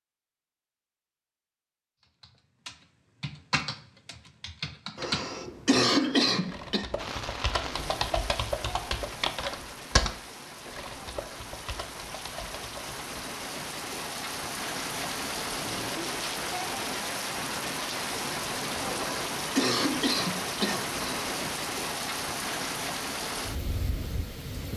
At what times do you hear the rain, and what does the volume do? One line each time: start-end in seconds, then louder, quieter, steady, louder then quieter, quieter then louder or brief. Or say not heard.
7.0-24.7 louder.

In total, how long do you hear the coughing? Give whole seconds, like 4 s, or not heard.
4 s.